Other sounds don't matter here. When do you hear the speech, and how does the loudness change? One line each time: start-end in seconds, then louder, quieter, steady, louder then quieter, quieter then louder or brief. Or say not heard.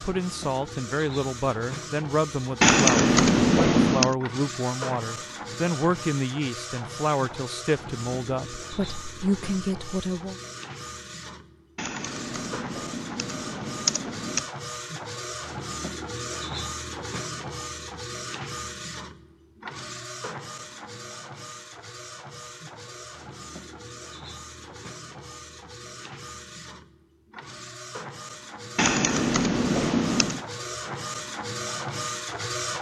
0.0-10.4 steady.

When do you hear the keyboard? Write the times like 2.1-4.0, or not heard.
2.6-4.2, 11.8-14.4, 28.8-30.4.